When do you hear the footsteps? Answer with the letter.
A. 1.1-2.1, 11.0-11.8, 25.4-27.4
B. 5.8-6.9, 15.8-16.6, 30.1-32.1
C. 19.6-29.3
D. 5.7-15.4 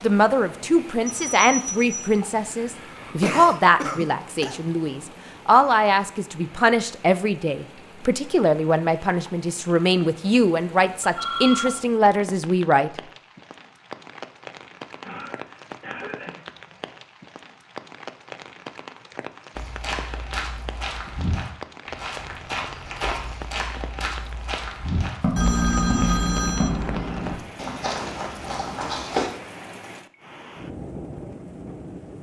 C.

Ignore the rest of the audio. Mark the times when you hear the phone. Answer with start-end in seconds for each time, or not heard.
1.1-2.1, 11.0-11.8, 25.4-27.4.